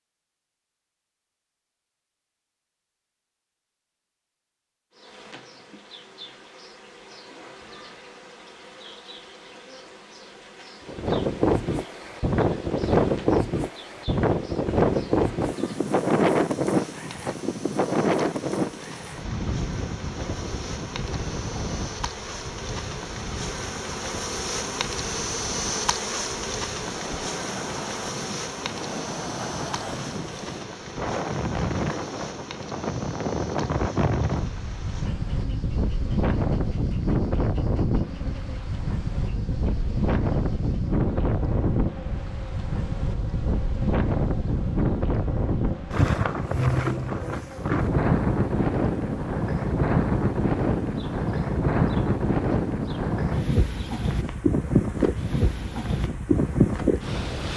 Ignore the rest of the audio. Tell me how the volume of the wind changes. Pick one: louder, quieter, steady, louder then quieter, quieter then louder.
quieter then louder.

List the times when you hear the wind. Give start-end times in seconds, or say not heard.
10.8-57.5.